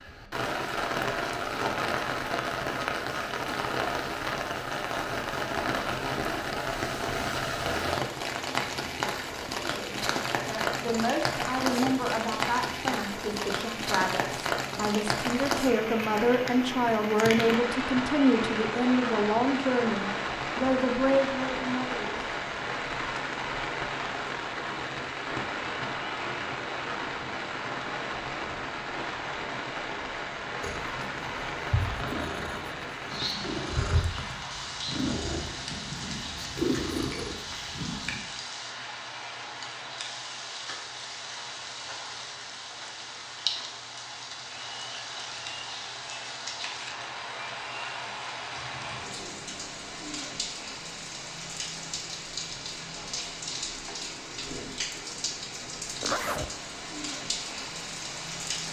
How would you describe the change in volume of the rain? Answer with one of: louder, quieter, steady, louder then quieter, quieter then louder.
quieter.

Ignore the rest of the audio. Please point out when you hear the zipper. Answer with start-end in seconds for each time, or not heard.
56.0-56.5.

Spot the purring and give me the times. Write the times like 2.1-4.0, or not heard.
30.6-38.2.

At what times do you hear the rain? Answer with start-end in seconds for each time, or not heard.
0.0-58.6.